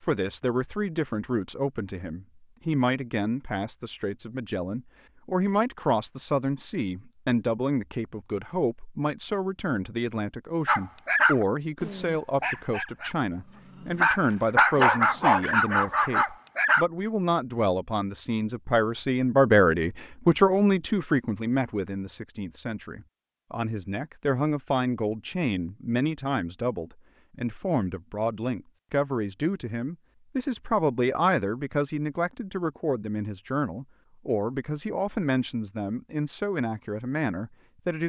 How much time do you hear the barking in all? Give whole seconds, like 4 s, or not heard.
6 s.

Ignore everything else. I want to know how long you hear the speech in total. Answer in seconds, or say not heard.
38 s.